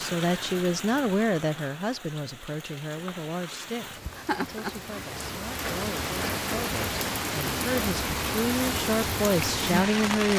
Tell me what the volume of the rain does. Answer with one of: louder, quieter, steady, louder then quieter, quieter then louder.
louder.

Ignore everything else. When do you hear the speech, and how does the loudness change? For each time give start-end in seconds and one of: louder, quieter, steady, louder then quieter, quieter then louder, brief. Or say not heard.
0.0-10.3 quieter then louder.